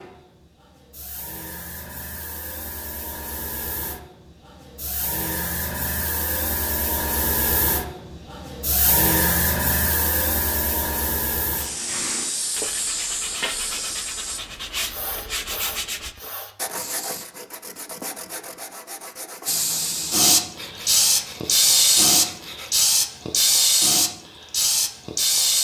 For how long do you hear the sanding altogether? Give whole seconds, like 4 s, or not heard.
11 s.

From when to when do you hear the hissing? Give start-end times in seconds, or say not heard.
0.0-17.2, 19.4-25.5.